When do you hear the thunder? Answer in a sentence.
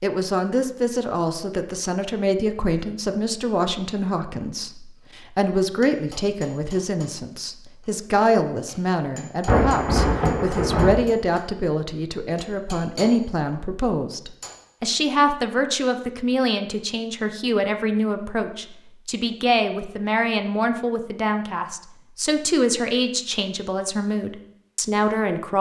The thunder can be heard from 9.4 to 10.9 s.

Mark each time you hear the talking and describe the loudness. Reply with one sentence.
You can hear the talking from 0.0 to 25.5 s, at a steady volume.